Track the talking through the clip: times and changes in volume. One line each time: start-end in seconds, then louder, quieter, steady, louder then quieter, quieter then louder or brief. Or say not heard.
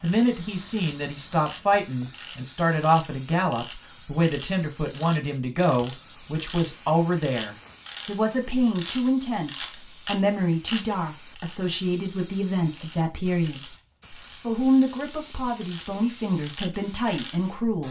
0.0-17.8 steady.